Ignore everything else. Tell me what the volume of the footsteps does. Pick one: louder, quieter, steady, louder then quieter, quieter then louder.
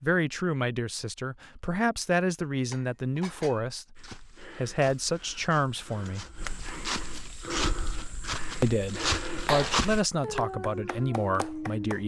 louder.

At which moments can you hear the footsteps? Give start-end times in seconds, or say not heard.
4.0-10.1.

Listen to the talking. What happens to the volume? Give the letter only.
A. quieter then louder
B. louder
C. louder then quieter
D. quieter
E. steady
E.